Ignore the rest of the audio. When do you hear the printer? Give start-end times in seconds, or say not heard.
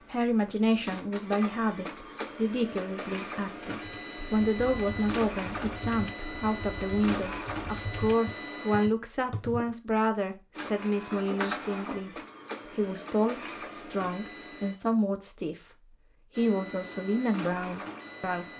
0.0-8.9, 10.5-14.8, 16.3-18.5.